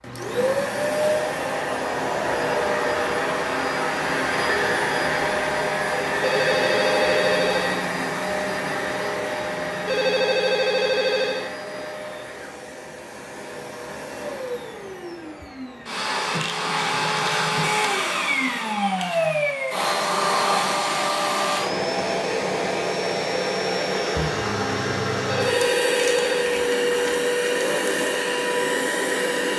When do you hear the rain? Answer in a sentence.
The rain can't be heard in this clip.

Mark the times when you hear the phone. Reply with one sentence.
The phone can be heard from 6.2 to 7.8 s, from 9.8 to 11.6 s and from 25.2 to 26.5 s.